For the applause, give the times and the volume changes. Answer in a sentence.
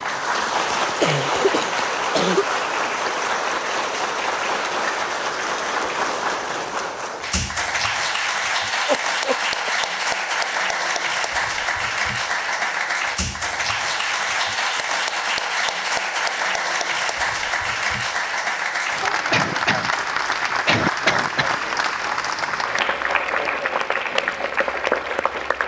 The applause can be heard from 0.0 to 25.6 s, at a steady volume.